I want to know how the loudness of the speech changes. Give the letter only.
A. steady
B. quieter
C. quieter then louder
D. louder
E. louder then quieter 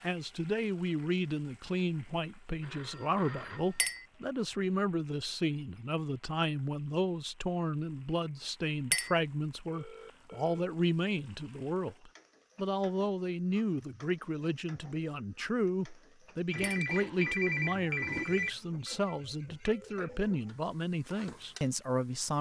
A.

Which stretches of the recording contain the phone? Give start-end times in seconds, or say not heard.
2.6-4.0, 9.7-10.7, 16.5-18.5.